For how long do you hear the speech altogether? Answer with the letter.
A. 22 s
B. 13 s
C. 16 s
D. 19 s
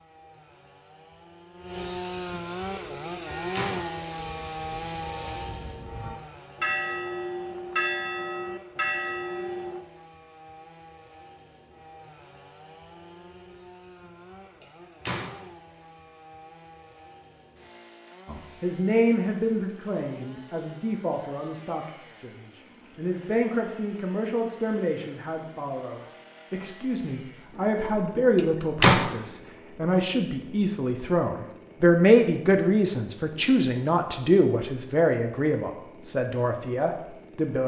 D.